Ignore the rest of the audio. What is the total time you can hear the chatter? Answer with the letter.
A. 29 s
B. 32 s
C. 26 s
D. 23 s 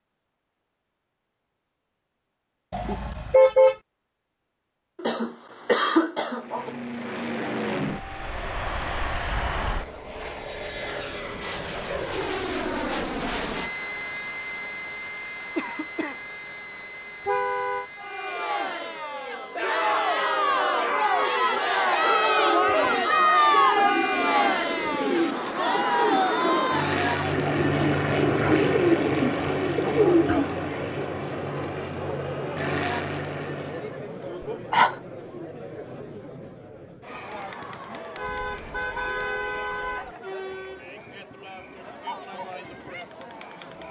C.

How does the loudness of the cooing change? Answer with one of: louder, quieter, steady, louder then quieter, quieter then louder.
louder.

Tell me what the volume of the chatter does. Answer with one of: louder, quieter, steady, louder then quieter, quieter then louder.
quieter.